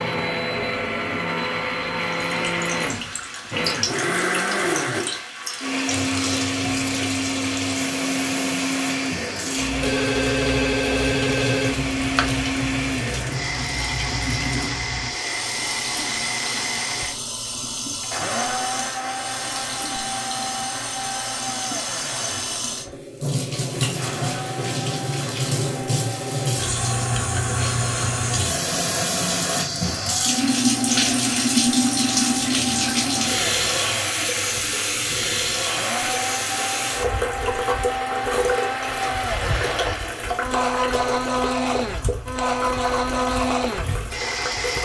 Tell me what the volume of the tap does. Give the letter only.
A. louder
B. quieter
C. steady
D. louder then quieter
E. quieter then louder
D.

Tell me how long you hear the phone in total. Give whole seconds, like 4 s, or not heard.
3 s.